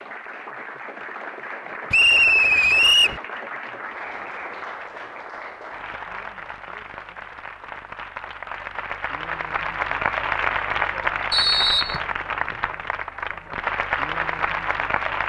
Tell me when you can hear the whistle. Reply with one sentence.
The whistle can be heard from 1.9 to 3.2 s and from 11.3 to 12.0 s.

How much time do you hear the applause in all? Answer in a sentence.
You can hear the applause for 15 seconds altogether.